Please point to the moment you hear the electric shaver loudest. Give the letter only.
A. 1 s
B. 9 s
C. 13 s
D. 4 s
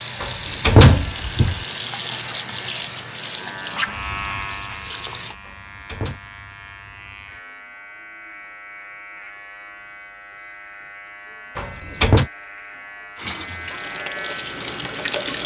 D.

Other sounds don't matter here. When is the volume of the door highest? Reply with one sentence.
The volume of the door peaks at 1 second.